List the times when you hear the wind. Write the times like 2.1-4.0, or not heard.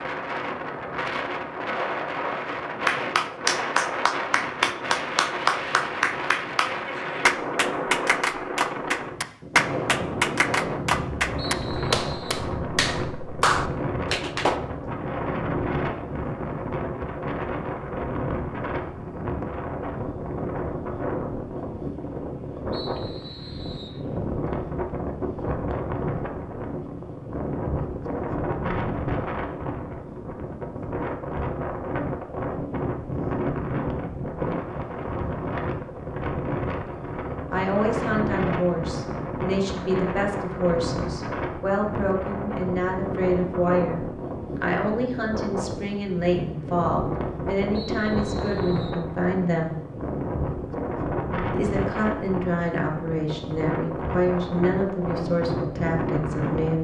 0.0-56.7.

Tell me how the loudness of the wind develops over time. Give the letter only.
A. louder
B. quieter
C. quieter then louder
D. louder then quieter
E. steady
E.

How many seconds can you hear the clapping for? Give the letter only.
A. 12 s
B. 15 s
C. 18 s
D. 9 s
A.